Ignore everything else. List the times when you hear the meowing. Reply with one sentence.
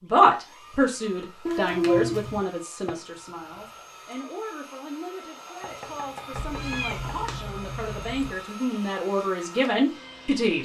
You can hear the meowing from 1.4 to 2.4 s and from 6.3 to 8.3 s.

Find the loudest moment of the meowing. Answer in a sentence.
The loudest moment of the meowing is at 2 seconds.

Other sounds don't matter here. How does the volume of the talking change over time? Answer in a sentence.
The loudness of the talking goes down, then up.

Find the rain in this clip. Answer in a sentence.
You can't hear the rain here.